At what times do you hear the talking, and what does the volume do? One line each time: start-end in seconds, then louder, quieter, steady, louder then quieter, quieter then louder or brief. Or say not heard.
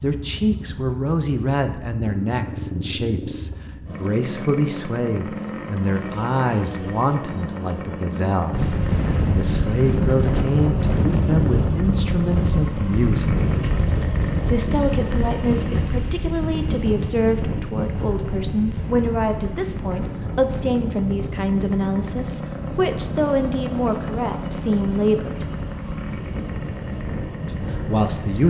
0.0-13.3 steady
14.5-25.4 steady
27.6-28.4 brief.